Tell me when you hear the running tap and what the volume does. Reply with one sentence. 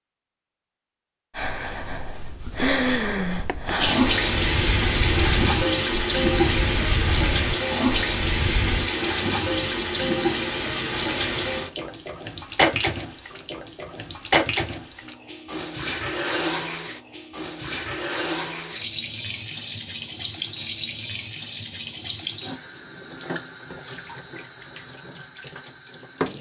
You can hear the running tap from 3.8 to 26.3 s, getting quieter.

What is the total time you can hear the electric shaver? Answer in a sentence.
The electric shaver can't be heard in this clip.